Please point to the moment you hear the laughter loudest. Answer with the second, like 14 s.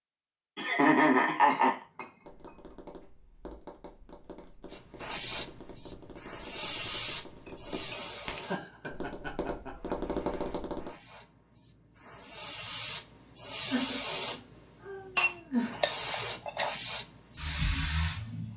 1 s.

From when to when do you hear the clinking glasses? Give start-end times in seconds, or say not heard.
1.4-2.5, 7.5-8.9, 15.2-16.8.